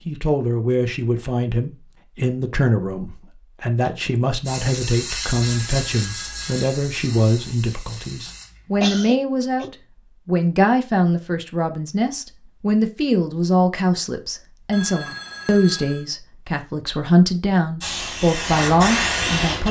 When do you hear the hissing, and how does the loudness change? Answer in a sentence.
The hissing can be heard from 4.5 to 8.8 s, getting quieter; and briefly from 17.8 to 19.6 s.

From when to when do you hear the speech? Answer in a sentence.
You can hear the speech from 0.1 to 19.6 s.